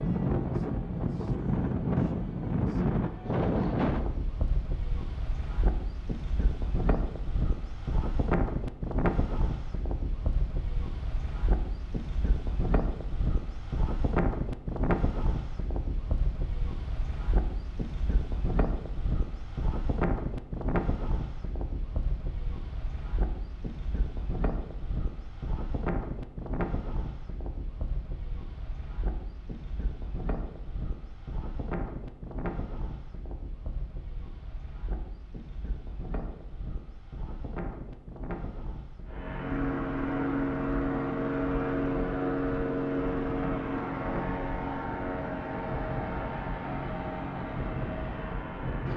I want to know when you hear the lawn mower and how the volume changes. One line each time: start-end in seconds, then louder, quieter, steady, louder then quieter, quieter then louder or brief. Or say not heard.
39.0-48.9 quieter.